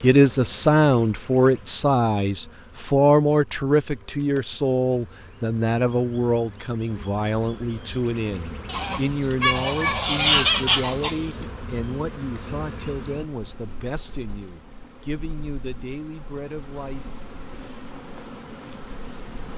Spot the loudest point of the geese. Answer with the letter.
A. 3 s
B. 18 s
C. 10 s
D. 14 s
C.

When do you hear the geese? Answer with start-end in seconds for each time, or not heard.
8.7-11.4.